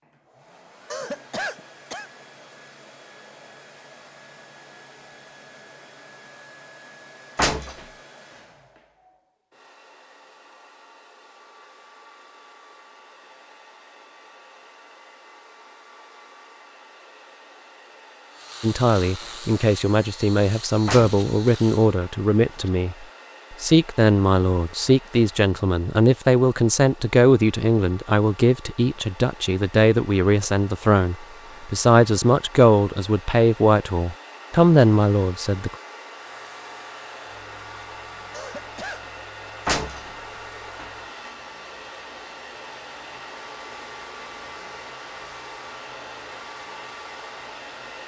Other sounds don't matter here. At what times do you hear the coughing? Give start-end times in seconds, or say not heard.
0.9-2.1, 38.3-39.0.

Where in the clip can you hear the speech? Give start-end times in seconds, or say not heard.
18.6-35.8.